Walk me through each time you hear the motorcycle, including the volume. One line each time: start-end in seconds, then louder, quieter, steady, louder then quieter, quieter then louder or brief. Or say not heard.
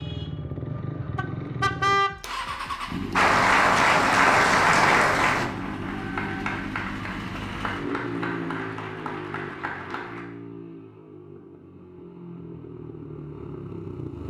0.0-14.2 quieter.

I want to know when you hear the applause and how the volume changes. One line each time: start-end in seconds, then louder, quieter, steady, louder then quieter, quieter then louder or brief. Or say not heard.
3.1-10.2 quieter.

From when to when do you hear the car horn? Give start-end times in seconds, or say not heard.
1.1-2.2.